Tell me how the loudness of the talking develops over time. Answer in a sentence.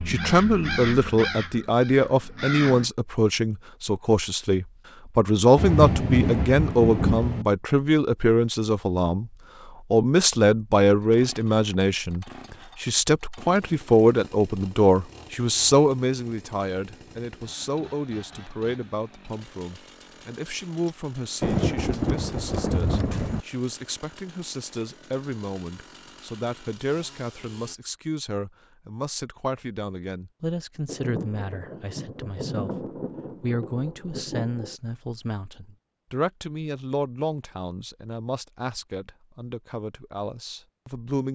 The volume of the talking goes down.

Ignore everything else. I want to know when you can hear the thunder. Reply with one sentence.
The thunder can be heard from 5.5 to 7.5 s, from 21.4 to 23.4 s and from 30.9 to 34.8 s.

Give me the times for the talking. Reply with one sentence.
The talking can be heard from 0.1 to 9.3 s and from 9.9 to 41.3 s.